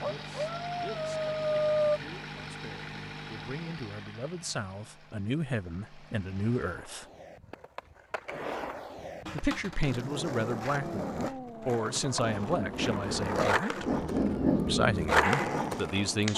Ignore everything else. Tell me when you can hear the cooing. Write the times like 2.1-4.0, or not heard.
not heard.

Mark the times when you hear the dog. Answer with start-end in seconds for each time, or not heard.
0.0-2.0, 10.8-16.3.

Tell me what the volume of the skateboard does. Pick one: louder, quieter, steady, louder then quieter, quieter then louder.
louder.